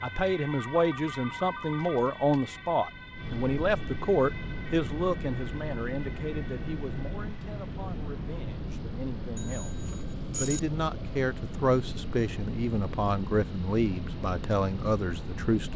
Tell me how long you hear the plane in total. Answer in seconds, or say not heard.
16 s.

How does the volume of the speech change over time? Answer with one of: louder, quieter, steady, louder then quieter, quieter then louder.
quieter then louder.